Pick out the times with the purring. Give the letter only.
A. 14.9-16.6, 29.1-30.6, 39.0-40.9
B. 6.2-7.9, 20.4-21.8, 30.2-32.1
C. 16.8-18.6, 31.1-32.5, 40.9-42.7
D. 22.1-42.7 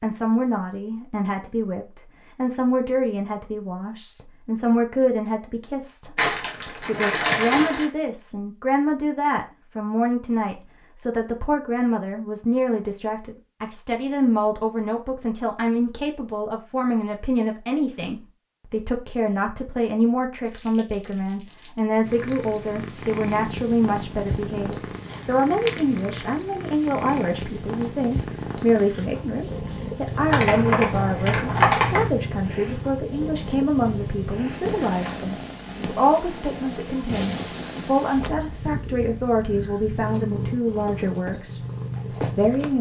D.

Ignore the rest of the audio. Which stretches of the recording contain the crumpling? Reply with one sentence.
You can hear the crumpling from 6.2 to 7.9 s, from 20.4 to 21.8 s and from 30.2 to 32.1 s.